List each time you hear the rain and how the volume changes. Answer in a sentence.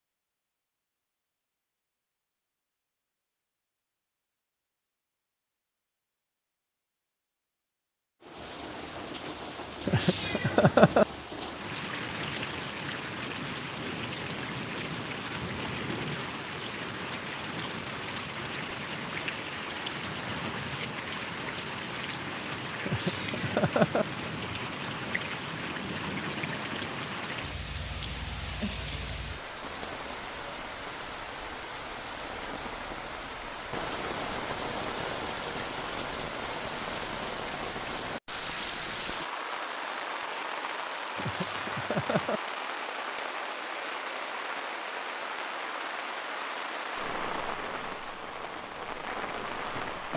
You can hear the rain from 8.2 to 50.1 s, at a steady volume.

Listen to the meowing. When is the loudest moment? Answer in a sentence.
The volume of the meowing peaks at 11 seconds.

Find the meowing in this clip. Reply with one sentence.
The meowing can be heard from 9.8 to 11.1 s, from 22.9 to 24.1 s and from 41.1 to 42.4 s.